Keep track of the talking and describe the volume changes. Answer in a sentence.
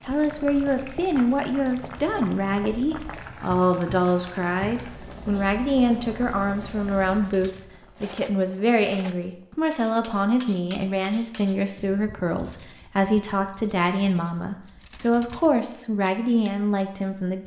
The volume of the talking stays about the same.